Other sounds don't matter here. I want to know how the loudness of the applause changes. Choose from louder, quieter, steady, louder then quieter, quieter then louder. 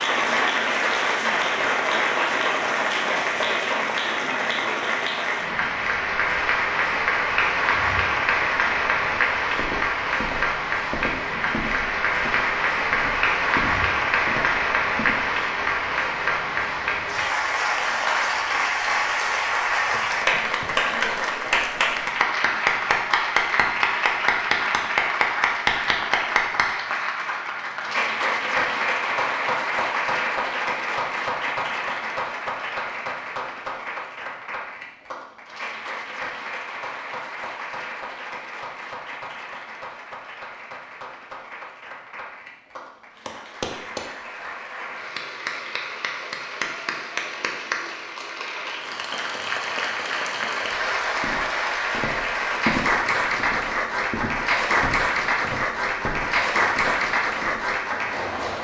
quieter then louder.